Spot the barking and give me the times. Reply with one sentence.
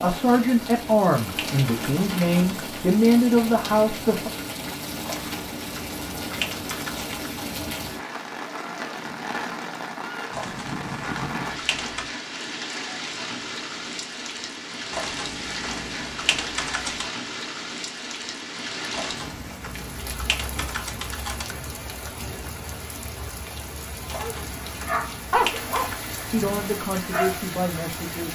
The barking can be heard from 24.1 to 27.4 s.